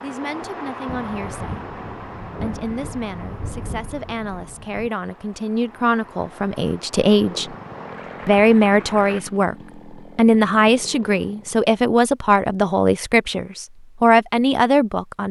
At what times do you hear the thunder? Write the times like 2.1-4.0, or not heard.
0.8-4.9.